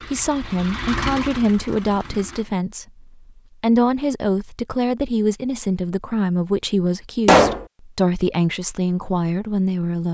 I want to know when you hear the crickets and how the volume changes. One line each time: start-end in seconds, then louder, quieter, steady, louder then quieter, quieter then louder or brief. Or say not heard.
not heard.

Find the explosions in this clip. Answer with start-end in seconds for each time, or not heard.
7.2-7.7.